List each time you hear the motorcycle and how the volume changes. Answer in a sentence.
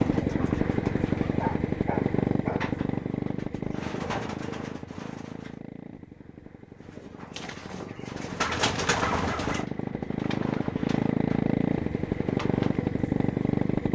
You can hear the motorcycle from 0.0 to 13.9 s, getting quieter then louder.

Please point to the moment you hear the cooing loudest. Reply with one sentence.
The volume of the cooing peaks at 9 seconds.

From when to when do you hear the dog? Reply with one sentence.
The dog can be heard from 1.3 to 2.8 s and from 8.3 to 9.7 s.